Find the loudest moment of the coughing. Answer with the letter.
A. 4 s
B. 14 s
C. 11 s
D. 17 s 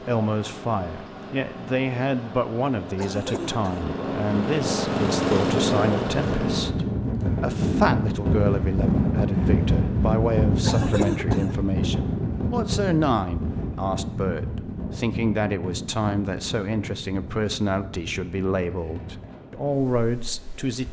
C.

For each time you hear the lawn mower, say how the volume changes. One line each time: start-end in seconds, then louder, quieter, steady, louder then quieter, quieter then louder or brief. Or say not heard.
0.0-6.8 louder.